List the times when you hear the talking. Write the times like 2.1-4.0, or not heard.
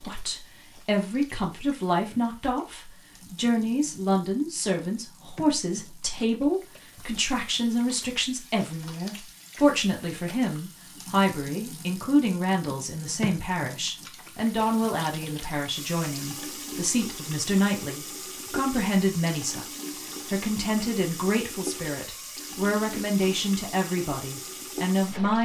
0.0-19.6, 20.3-25.4.